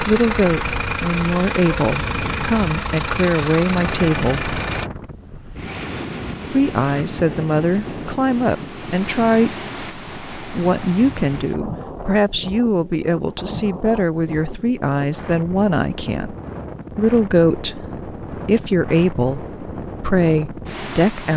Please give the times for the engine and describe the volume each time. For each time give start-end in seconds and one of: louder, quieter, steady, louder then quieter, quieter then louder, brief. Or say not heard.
0.0-4.9 steady.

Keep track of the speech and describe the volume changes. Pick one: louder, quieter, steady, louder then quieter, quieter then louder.
steady.